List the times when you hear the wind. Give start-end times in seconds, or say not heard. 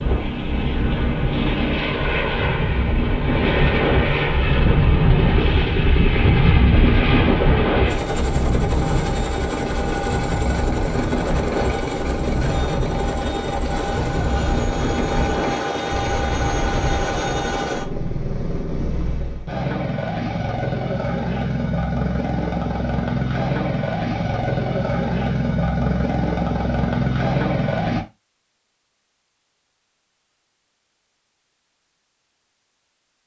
0.0-17.6.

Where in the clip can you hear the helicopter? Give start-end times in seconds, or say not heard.
0.0-28.1.